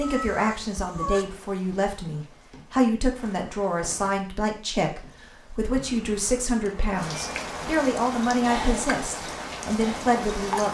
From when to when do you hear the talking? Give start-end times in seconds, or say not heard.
0.0-10.6.